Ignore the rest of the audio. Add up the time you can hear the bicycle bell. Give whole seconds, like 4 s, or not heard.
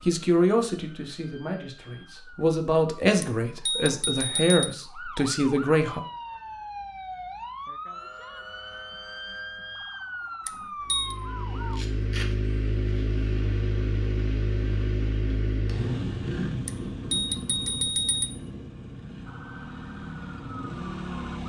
4 s.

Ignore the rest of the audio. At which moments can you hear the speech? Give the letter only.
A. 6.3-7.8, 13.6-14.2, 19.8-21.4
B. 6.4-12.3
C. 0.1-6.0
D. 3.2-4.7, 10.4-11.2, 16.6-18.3
C.